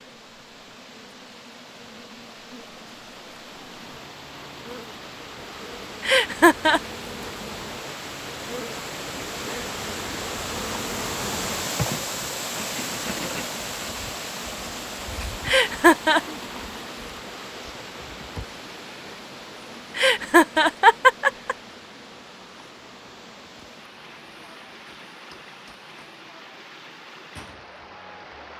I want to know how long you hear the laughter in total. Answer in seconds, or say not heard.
3 s.